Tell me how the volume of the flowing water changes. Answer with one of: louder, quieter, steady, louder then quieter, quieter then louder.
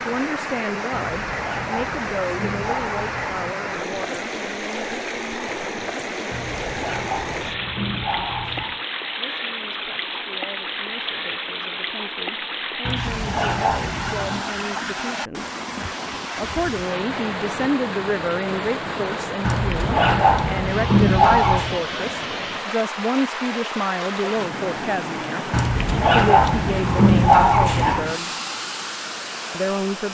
steady.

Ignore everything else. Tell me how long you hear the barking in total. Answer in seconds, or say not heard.
12 s.